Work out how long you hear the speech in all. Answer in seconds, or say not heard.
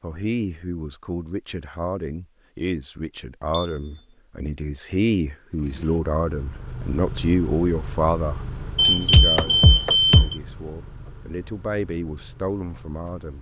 13 s.